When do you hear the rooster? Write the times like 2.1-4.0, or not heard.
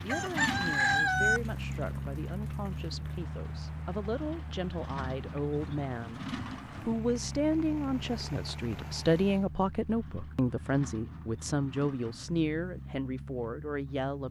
0.1-1.4.